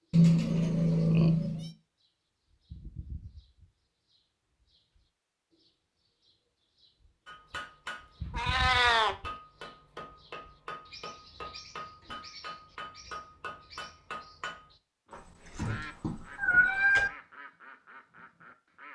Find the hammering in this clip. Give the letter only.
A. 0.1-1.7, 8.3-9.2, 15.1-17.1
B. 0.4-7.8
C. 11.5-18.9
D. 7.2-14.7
D.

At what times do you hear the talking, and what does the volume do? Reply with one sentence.
The talking can't be heard in this clip.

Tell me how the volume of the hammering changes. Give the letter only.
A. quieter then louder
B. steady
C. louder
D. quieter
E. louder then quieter
B.